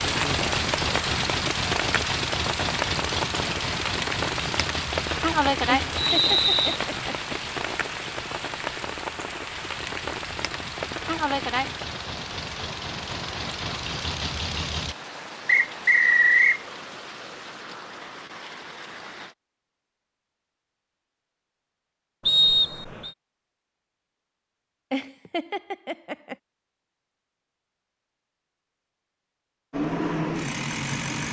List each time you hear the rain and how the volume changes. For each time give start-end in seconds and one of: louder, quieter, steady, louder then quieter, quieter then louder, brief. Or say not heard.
0.0-19.4 quieter.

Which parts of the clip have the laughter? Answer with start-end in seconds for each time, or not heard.
5.7-7.3, 24.9-26.4.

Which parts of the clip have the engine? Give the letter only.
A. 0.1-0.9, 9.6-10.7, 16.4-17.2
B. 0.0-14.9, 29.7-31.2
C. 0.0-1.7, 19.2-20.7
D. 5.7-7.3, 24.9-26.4
B.